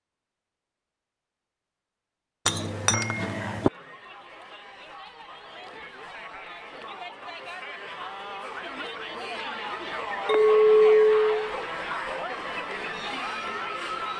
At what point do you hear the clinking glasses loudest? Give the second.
11 s.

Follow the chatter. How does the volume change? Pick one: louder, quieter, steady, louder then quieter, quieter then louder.
louder.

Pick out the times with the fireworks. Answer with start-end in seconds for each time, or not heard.
not heard.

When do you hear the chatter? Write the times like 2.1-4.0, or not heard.
2.5-14.1.